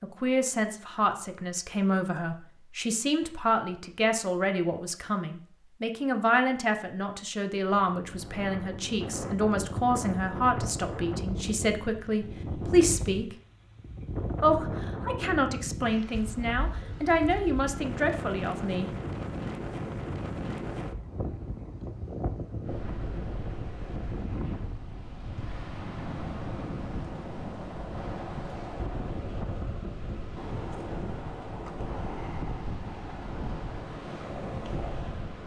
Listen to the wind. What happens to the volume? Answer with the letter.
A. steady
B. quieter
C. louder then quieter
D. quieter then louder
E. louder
A.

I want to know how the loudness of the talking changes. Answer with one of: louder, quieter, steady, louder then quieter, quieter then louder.
steady.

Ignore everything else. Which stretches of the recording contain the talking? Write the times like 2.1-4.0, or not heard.
0.0-13.3, 14.4-18.9.